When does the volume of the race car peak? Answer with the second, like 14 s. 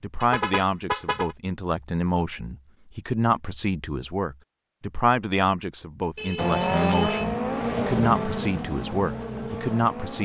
7 s.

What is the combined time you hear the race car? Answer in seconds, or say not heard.
4 s.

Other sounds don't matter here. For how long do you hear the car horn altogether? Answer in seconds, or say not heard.
2 s.